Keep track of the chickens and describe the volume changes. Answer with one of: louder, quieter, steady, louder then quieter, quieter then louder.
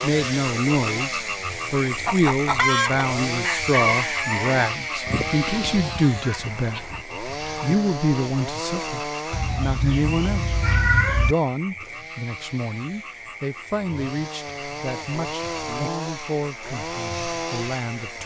quieter.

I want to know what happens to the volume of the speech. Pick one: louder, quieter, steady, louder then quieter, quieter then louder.
quieter.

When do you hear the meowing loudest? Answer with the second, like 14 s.
11 s.